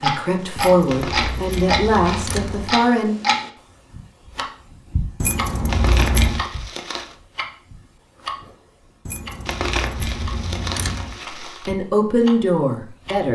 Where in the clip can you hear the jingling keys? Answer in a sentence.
You can hear the jingling keys from 0.6 to 2.8 s, from 5.2 to 6.5 s and from 9.1 to 11.2 s.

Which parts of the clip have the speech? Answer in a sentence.
The speech can be heard from 0.0 to 3.1 s and from 11.4 to 13.2 s.